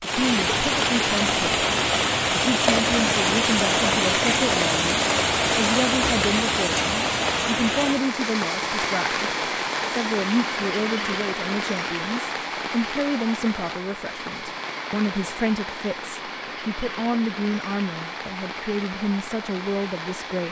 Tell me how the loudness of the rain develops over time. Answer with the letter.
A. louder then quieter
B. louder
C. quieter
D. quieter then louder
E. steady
C.